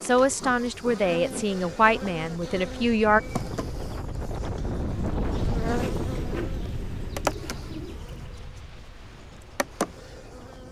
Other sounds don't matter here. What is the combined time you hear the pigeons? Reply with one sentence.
You can hear the pigeons for 3 seconds altogether.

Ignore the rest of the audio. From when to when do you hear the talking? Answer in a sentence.
You can hear the talking from 0.0 to 3.2 s.